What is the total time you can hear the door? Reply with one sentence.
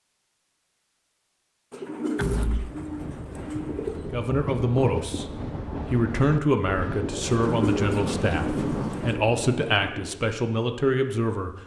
You can hear the door for 2 seconds altogether.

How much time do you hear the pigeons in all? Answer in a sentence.
The pigeons can be heard for 4 seconds in total.